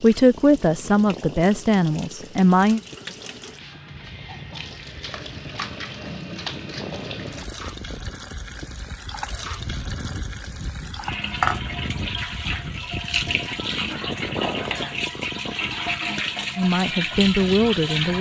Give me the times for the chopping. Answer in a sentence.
You can't hear the chopping here.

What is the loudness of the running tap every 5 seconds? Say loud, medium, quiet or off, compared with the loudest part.
quiet, medium, loud, loud.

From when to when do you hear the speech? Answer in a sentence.
The speech can be heard from 0.0 to 2.8 s and from 16.6 to 18.1 s.